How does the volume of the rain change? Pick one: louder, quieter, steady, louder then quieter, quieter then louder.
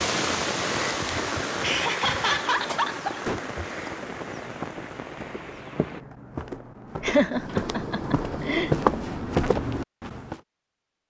quieter.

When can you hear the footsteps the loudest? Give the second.
9 s.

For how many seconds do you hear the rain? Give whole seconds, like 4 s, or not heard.
6 s.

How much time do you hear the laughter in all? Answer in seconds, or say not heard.
4 s.